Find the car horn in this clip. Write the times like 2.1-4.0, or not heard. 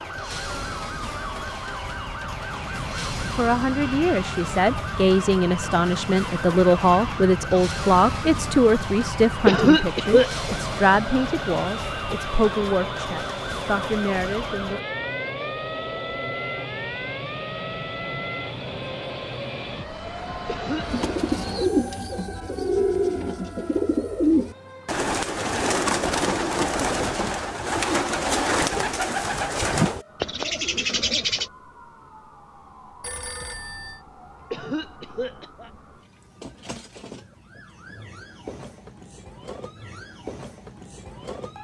not heard.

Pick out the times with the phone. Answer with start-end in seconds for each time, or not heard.
33.0-34.0.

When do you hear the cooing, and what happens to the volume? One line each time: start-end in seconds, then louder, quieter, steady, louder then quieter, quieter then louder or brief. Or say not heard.
20.8-31.5 steady.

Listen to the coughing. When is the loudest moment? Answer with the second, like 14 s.
10 s.